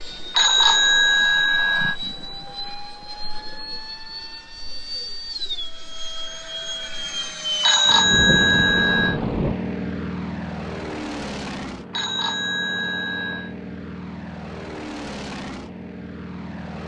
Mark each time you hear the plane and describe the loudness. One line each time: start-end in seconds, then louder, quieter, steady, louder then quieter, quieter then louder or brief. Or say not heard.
0.0-16.8 louder then quieter.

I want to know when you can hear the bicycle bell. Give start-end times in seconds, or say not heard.
0.3-1.9, 7.6-9.2, 11.9-13.6.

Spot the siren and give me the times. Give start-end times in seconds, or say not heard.
not heard.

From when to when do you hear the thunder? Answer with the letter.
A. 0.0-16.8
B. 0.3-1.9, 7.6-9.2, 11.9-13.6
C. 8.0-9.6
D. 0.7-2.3
C.